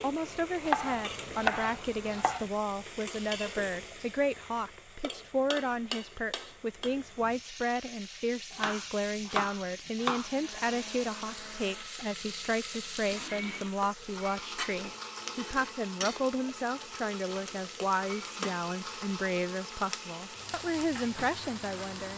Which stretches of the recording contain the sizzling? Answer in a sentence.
The sizzling can be heard from 0.0 to 22.1 s.